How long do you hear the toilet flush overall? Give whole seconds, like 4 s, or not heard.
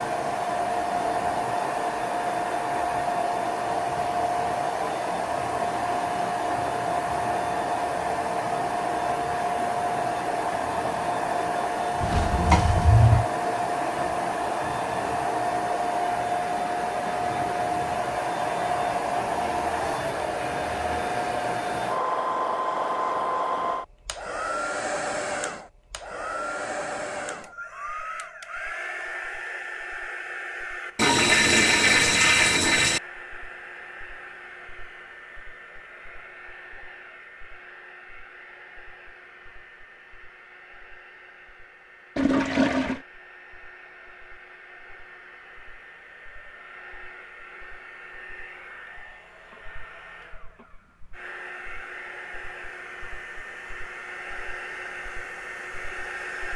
4 s.